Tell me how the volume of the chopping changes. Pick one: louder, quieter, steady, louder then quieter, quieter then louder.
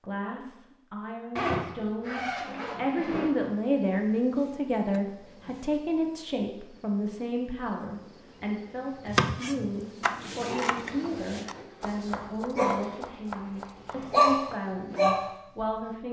quieter.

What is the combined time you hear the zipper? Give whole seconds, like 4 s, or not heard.
2 s.